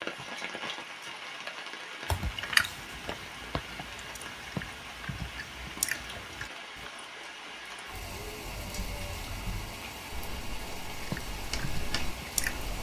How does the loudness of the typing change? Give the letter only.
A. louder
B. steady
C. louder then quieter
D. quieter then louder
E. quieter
A.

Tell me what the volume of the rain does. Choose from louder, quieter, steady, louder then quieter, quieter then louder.
steady.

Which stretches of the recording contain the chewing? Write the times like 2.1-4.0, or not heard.
2.0-6.9, 11.0-12.7.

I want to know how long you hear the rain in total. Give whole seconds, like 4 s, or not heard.
13 s.